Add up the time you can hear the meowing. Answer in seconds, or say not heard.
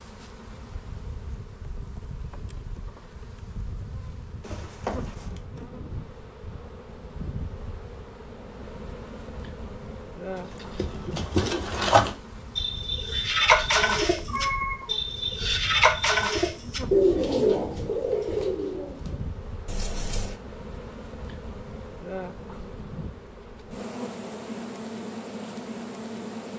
4 s.